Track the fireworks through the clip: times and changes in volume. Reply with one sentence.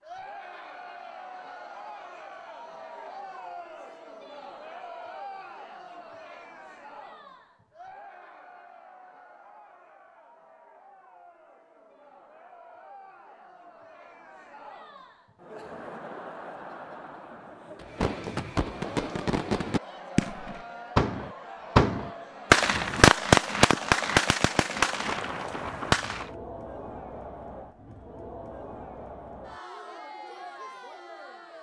The fireworks can be heard from 17.8 to 26.3 s, getting louder then quieter.